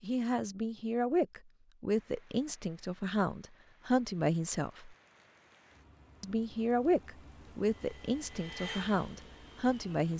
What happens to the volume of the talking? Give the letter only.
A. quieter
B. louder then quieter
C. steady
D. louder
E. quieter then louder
C.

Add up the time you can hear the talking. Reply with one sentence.
You can hear the talking for 9 seconds altogether.